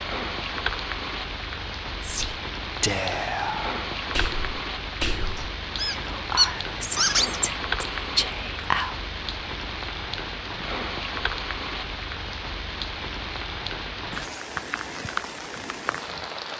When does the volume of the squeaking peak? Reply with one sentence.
The loudest moment of the squeaking is at 7 seconds.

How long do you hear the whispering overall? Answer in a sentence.
You can hear the whispering for 7 seconds altogether.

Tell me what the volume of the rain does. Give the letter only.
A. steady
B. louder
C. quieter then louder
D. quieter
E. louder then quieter
A.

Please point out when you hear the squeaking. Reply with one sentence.
The squeaking can be heard from 5.3 to 7.4 s.